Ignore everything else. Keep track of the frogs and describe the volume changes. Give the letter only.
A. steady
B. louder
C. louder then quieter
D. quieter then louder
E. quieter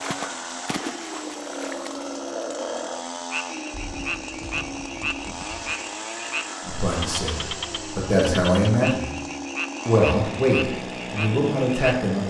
A.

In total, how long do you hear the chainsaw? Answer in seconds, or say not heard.
12 s.